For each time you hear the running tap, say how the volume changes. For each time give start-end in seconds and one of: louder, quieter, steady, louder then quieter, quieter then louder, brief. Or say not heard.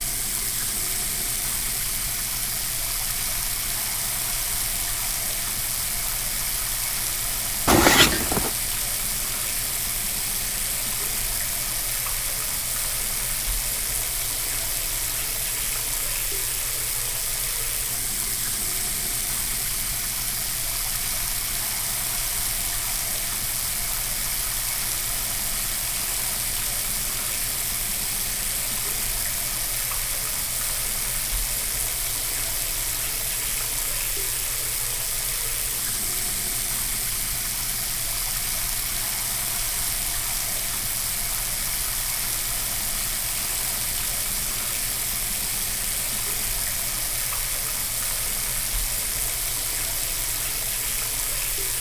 0.0-51.7 steady.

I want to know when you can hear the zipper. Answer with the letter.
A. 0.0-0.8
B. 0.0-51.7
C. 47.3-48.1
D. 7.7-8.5
D.